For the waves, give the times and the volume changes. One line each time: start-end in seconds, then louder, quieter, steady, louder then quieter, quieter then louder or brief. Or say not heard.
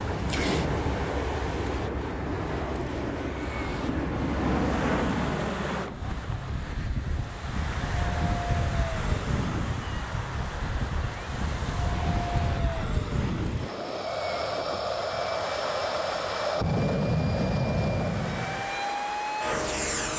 0.0-20.1 steady.